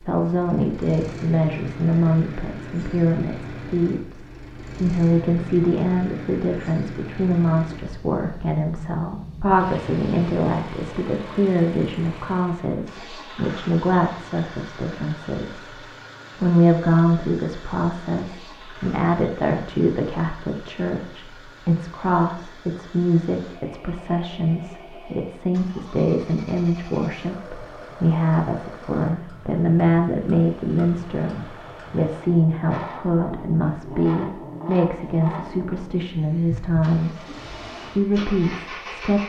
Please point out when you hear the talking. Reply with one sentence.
You can hear the talking from 0.0 to 39.2 s.